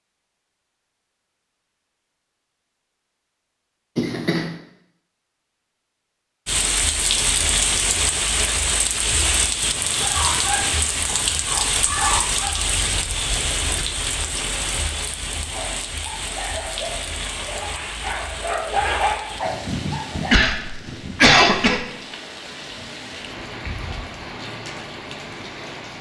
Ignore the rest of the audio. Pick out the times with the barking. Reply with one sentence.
The barking can be heard from 10.0 to 12.7 s and from 15.4 to 20.6 s.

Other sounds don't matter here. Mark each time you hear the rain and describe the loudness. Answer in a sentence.
The rain can be heard from 6.5 to 25.9 s, getting quieter.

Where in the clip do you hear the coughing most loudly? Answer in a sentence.
The loudest moment of the coughing is at 21 seconds.